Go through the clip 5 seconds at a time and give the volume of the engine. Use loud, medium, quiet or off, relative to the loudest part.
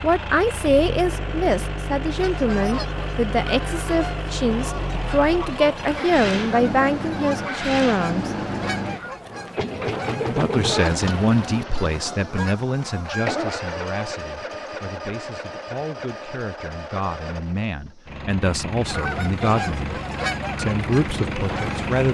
loud, loud, loud, medium, loud.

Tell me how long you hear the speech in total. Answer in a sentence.
You can hear the speech for 19 seconds altogether.